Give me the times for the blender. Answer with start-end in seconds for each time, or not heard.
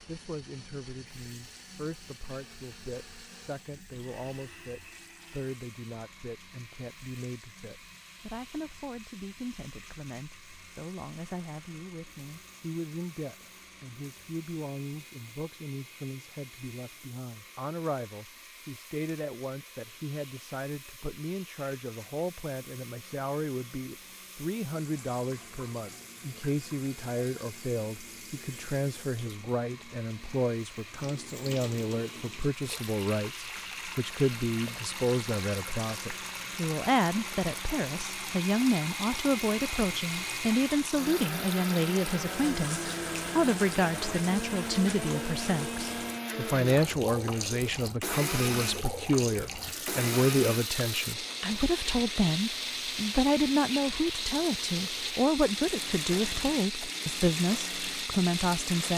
0.0-58.9.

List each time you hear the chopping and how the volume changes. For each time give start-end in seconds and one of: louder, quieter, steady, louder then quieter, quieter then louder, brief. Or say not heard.
not heard.